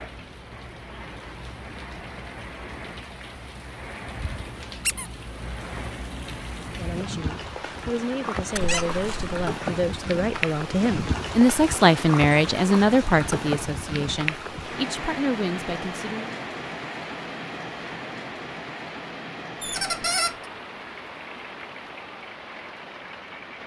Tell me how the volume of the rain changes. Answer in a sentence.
The volume of the rain goes up, then down.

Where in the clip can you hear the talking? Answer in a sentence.
You can hear the talking from 6.7 to 16.3 s.